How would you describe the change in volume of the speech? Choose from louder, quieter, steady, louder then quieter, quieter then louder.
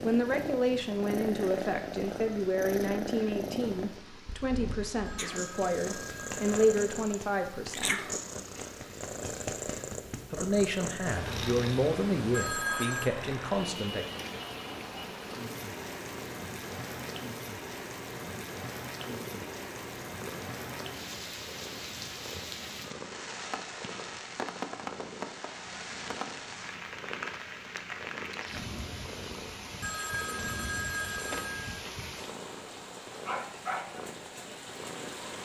steady.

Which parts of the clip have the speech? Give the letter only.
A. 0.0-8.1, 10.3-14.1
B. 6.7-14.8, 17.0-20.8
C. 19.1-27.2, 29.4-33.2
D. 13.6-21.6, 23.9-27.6
A.